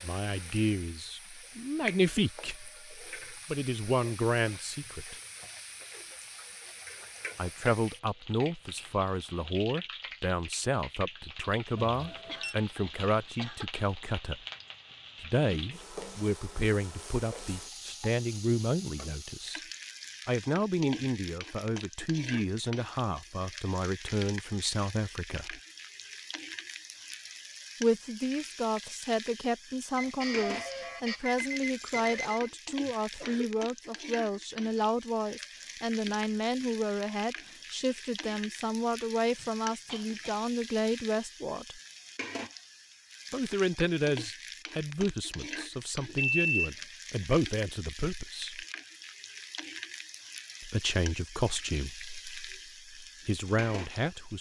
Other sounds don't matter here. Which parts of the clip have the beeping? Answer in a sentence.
The beeping can be heard from 11.8 to 12.6 s, from 29.9 to 32.5 s and from 46.0 to 46.6 s.